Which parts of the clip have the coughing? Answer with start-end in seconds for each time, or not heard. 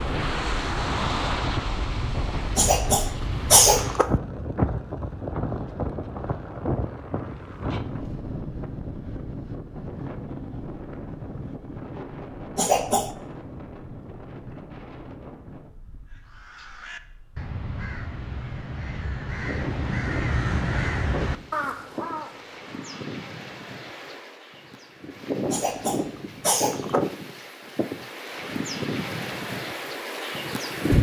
2.5-4.1, 12.6-13.2, 25.5-27.1.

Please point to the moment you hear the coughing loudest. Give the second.
4 s.